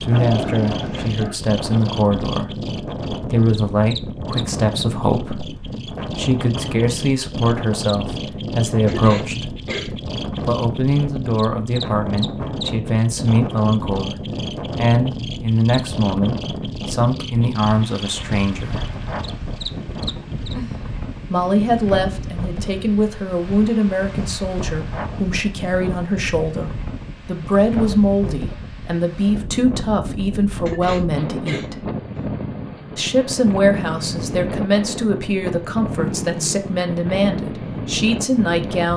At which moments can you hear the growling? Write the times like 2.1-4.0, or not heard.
0.1-1.4, 19.7-22.3, 36.0-36.6.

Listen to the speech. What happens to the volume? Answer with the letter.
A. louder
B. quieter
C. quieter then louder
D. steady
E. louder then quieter
D.